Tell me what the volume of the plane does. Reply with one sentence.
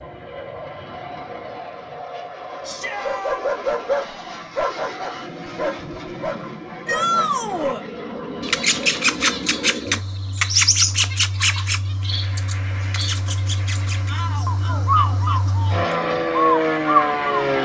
The loudness of the plane goes up.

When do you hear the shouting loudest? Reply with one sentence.
The volume of the shouting peaks at 7 seconds.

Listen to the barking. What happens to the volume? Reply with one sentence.
The volume of the barking goes down.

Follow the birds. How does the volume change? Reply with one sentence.
The volume of the birds goes down, then up.